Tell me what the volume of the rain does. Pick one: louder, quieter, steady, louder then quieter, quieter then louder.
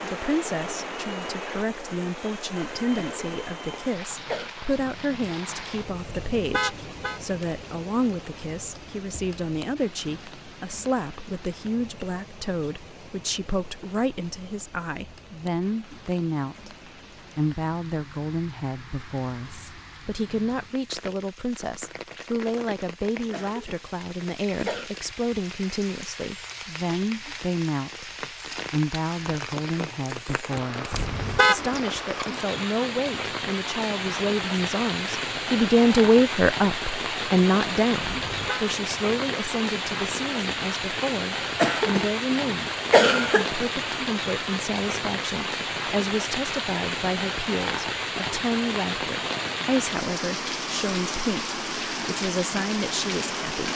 quieter then louder.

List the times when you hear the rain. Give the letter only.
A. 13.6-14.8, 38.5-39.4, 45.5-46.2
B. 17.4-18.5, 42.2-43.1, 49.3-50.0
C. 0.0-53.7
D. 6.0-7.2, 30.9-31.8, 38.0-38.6
C.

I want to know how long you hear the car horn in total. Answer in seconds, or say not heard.
3 s.